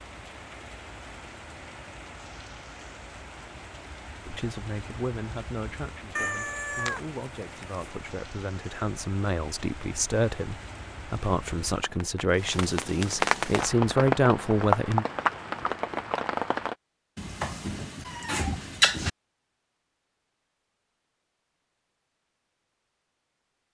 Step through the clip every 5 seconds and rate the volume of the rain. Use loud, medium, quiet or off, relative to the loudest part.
quiet, quiet, loud, loud, off.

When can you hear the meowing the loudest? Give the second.
19 s.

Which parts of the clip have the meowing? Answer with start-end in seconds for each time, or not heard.
6.2-7.8, 17.1-19.1.